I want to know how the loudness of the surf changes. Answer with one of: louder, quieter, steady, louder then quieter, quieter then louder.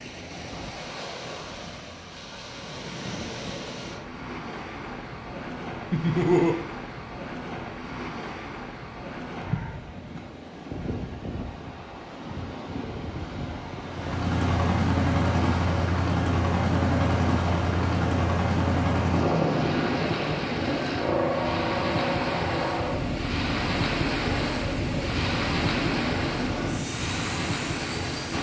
louder.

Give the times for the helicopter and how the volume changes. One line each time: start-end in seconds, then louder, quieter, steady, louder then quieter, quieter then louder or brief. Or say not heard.
13.8-28.3 quieter.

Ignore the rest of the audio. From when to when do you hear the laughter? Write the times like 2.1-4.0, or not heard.
5.9-6.7.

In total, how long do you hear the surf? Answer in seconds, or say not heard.
28 s.